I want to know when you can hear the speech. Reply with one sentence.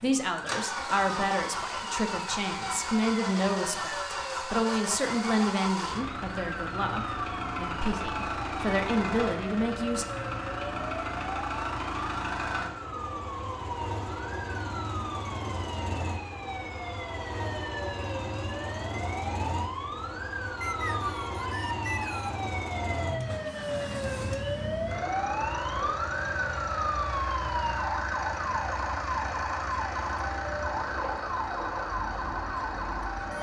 You can hear the speech from 0.0 to 10.1 s.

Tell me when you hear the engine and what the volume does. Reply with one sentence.
The engine can be heard from 0.0 to 33.3 s, at a steady volume.